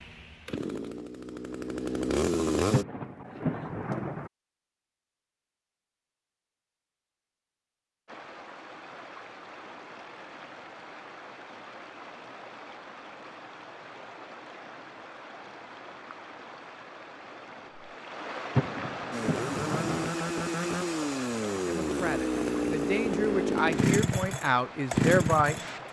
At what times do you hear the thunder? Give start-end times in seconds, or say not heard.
2.7-4.3, 18.6-20.1.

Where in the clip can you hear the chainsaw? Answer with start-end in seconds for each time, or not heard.
0.0-2.9, 19.1-25.8.